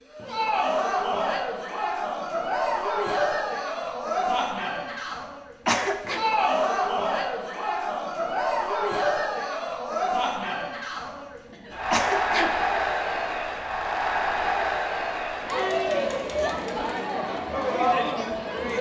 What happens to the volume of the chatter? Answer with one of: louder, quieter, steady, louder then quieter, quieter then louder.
steady.